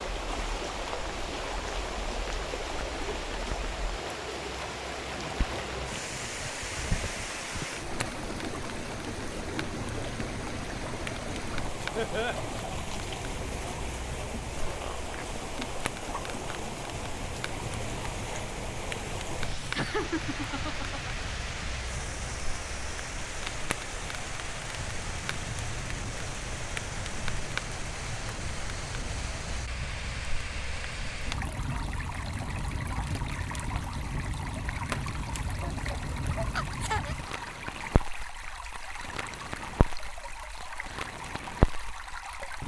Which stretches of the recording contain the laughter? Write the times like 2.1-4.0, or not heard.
11.9-12.4, 19.8-21.1, 35.6-37.1.